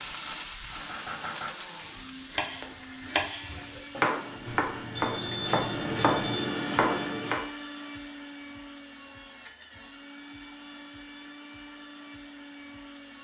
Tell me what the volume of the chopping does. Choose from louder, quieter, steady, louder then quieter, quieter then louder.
louder.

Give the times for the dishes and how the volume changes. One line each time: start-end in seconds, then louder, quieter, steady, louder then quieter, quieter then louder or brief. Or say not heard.
not heard.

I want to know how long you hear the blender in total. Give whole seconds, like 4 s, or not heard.
13 s.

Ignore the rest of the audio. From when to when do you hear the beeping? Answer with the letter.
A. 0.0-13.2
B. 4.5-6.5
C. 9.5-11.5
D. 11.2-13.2
B.